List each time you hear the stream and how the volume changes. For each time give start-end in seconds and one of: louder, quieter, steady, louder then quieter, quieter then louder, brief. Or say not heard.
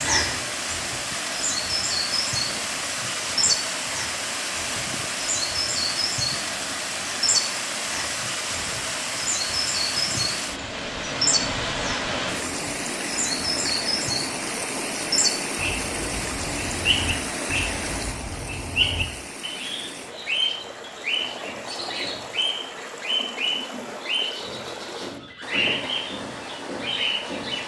0.0-27.6 quieter.